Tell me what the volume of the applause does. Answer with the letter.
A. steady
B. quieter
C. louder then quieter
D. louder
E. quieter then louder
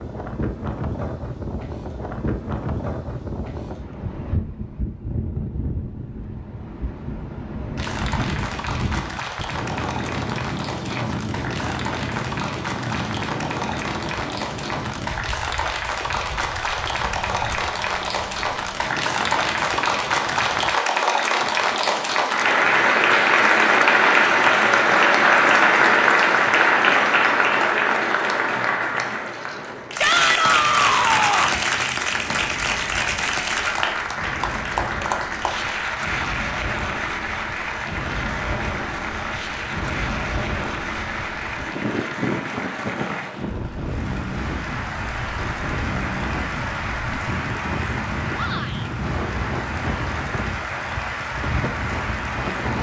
C.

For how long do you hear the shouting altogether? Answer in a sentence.
The shouting can be heard for 3 seconds in total.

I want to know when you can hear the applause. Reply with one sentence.
The applause can be heard from 7.8 to 52.7 s.